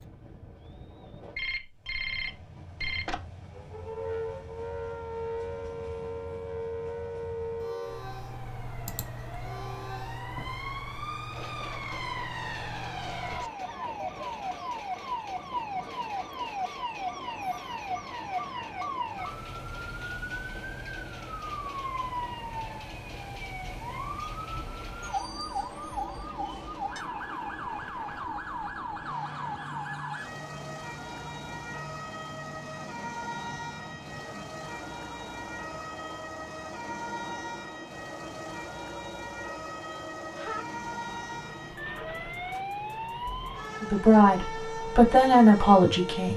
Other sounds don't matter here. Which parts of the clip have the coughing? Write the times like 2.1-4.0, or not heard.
not heard.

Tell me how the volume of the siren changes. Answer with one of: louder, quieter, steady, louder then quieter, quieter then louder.
steady.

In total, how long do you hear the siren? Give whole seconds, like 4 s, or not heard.
43 s.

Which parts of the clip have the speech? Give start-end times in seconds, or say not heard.
43.8-46.3.